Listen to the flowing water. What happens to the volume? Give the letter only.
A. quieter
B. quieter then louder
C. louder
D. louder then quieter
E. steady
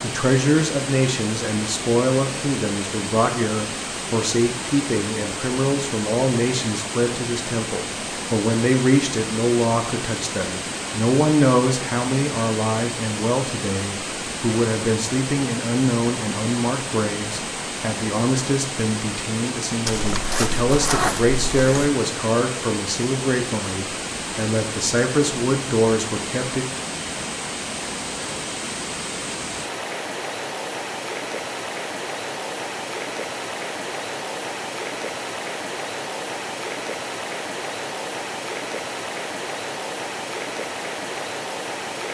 E.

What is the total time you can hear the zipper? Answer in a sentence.
The zipper can be heard for 2 seconds in total.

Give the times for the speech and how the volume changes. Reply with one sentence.
The speech can be heard from 0.0 to 26.6 s, at a steady volume.